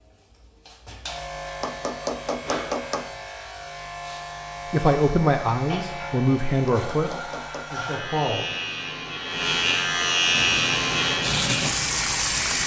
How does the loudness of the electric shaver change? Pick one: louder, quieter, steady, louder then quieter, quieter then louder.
louder.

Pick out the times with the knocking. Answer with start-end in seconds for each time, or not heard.
1.6-3.1, 6.7-7.8.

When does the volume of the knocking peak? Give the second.
3 s.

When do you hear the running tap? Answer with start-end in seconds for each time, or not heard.
10.3-12.6.